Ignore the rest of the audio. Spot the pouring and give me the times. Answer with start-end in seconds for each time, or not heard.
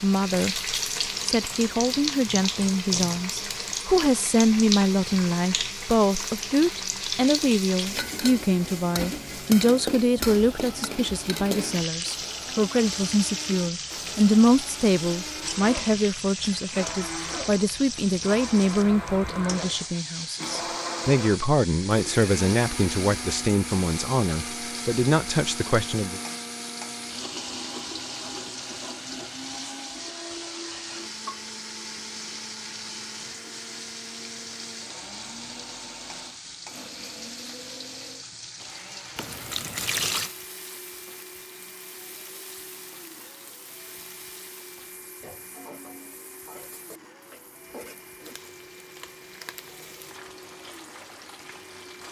39.1-40.4.